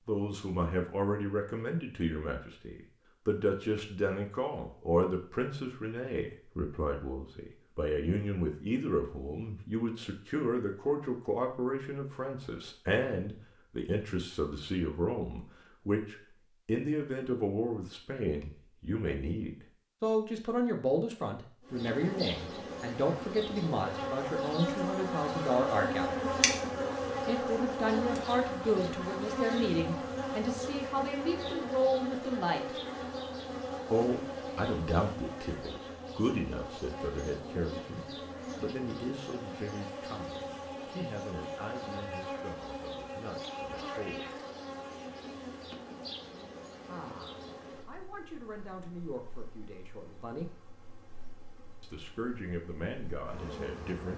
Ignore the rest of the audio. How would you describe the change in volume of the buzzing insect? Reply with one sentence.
The loudness of the buzzing insect goes down.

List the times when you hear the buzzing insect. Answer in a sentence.
The buzzing insect can be heard from 21.6 to 54.1 s.